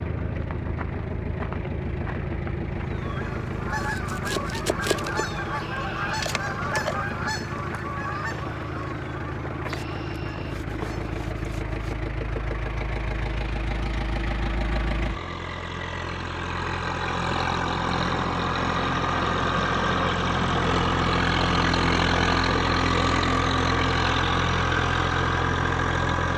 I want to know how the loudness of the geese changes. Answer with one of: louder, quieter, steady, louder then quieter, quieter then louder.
quieter.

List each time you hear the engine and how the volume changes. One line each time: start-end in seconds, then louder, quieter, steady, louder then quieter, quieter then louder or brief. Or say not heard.
0.0-26.3 louder.